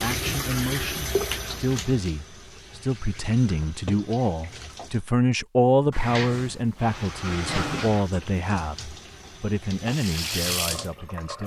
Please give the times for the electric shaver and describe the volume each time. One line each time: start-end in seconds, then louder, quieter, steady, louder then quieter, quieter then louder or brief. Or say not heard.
not heard.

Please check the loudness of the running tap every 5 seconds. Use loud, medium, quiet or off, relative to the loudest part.
loud, medium, loud.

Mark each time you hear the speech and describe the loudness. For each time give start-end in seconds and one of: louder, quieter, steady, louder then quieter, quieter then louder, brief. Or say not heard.
0.0-11.4 louder then quieter.